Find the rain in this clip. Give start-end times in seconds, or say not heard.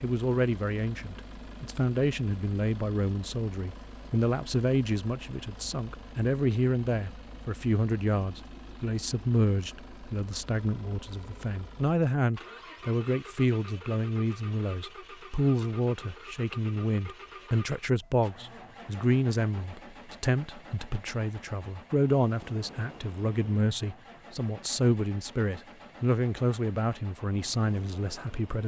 not heard.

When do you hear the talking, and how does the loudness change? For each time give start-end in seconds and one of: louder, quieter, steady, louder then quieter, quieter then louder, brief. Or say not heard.
0.0-28.6 steady.